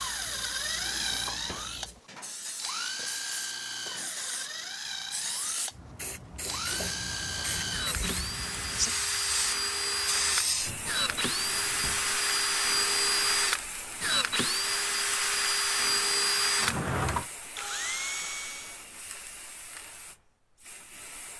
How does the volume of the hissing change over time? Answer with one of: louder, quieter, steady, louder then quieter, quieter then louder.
louder then quieter.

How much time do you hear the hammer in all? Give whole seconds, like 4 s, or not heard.
not heard.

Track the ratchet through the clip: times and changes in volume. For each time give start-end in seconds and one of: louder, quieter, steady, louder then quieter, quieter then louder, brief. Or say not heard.
not heard.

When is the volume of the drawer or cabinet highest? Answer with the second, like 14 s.
17 s.